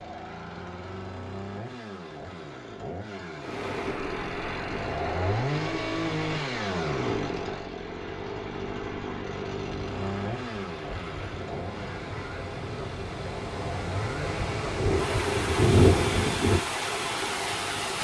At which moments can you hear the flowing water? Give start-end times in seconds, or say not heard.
3.4-18.0.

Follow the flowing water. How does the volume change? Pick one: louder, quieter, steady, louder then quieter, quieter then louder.
quieter then louder.